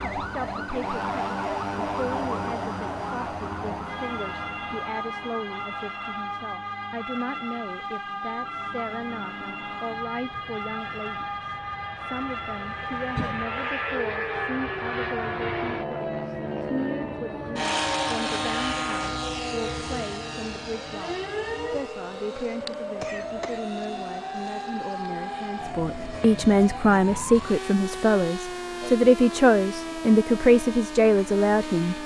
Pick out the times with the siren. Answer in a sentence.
The siren can be heard from 0.0 to 32.0 s.